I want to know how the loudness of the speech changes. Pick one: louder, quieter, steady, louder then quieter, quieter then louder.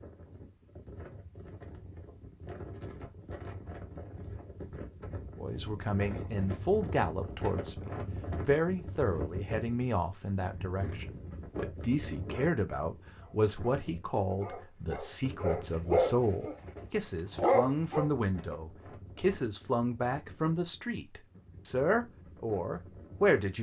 steady.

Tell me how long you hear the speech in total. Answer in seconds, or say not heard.
18 s.